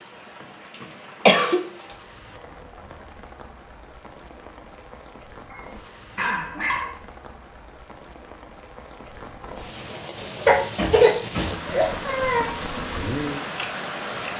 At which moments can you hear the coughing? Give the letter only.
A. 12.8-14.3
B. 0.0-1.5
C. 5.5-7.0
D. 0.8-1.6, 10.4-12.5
D.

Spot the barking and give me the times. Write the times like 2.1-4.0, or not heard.
5.5-7.0.